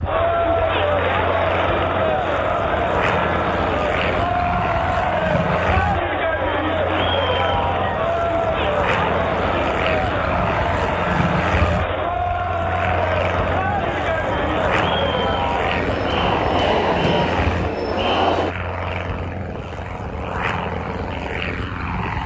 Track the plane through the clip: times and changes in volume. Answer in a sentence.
You can hear the plane from 0.0 to 22.2 s, at a steady volume.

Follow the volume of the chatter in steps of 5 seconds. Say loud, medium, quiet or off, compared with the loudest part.
loud, loud, loud, loud, off.